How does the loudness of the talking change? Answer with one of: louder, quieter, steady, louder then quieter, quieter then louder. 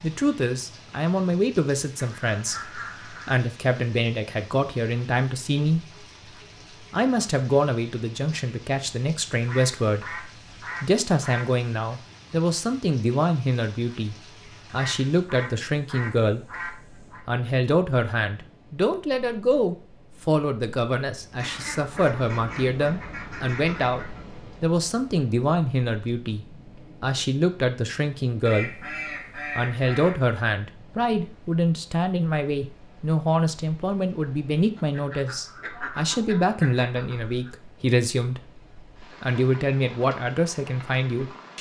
steady.